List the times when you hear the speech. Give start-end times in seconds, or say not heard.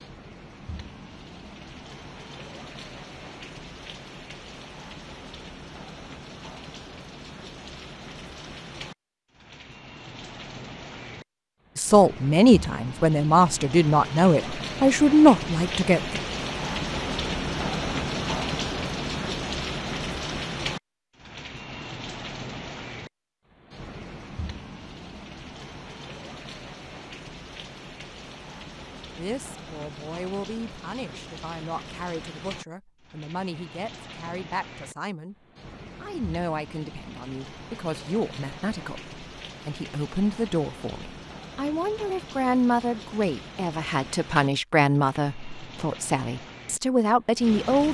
11.8-16.2, 29.1-35.4, 36.0-47.8.